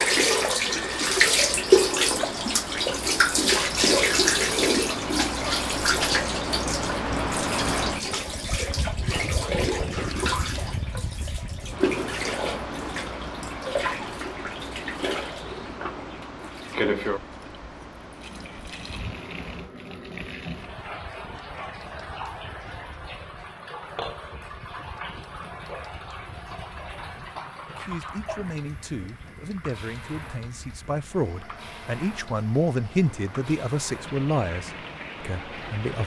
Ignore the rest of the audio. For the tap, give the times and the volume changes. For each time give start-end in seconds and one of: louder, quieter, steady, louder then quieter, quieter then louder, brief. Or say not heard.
0.0-36.0 quieter.